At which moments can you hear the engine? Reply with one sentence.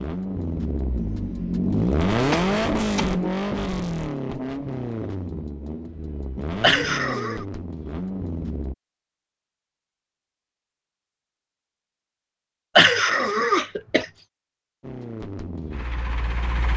You can hear the engine from 0.0 to 8.8 s and from 14.8 to 16.7 s.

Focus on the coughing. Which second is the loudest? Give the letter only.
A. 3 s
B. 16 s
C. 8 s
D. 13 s
D.